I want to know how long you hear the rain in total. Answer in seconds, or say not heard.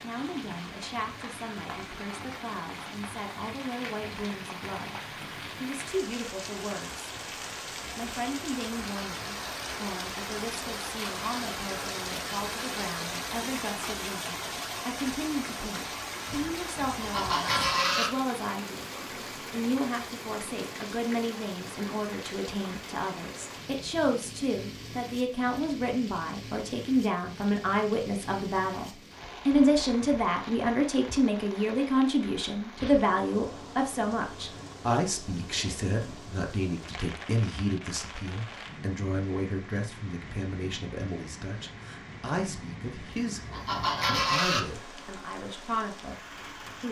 47 s.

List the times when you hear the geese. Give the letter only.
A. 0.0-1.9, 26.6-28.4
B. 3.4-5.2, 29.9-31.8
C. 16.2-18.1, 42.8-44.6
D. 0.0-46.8
C.